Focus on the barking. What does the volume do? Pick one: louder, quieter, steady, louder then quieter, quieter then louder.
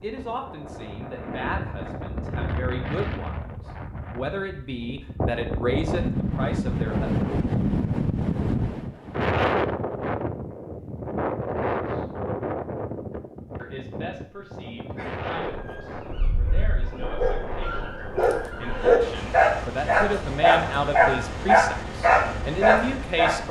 louder.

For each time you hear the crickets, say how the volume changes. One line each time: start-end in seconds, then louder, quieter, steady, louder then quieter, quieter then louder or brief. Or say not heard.
not heard.